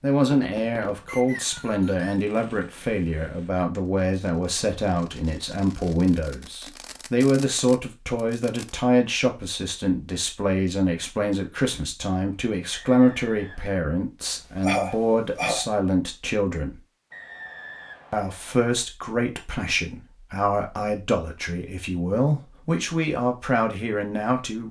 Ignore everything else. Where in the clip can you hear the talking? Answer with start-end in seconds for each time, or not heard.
0.0-16.8, 18.1-24.6.